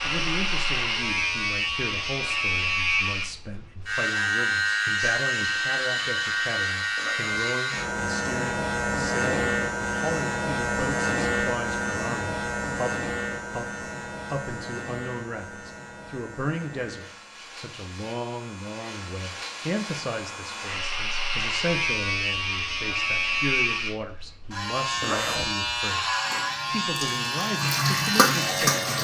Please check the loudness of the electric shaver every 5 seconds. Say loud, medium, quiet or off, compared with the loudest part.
loud, loud, loud, quiet, loud, loud.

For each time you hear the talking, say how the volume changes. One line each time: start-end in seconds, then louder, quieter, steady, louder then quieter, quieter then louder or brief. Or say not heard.
0.0-28.9 steady.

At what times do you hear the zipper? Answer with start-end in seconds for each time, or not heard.
7.0-7.5, 25.0-25.5.